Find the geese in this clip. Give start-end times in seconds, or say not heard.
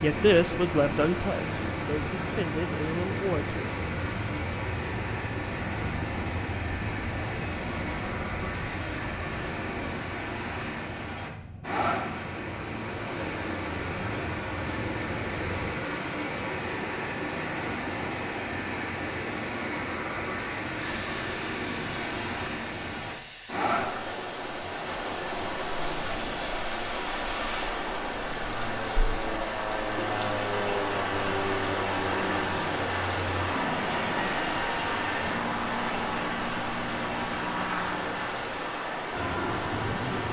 not heard.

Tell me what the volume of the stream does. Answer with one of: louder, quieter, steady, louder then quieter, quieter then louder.
steady.